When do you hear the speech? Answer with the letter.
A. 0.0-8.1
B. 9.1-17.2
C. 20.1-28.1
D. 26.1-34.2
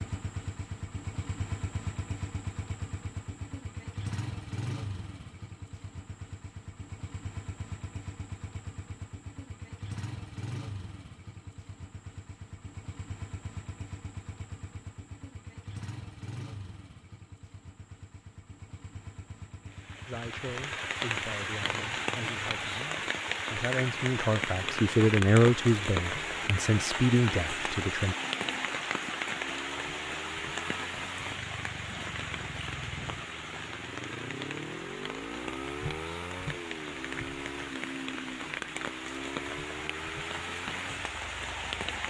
C.